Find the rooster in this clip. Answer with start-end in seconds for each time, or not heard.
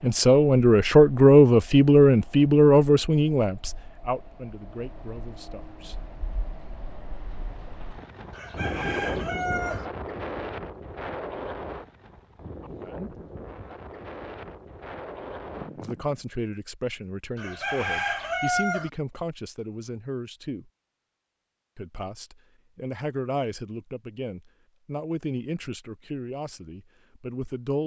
8.3-9.8, 17.4-18.9.